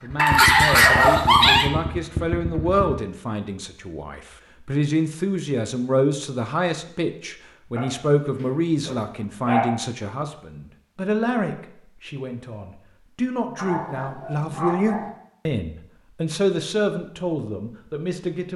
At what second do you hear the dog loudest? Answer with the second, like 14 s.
1 s.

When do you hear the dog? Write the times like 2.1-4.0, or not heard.
0.1-1.7, 7.8-9.8, 13.6-15.1.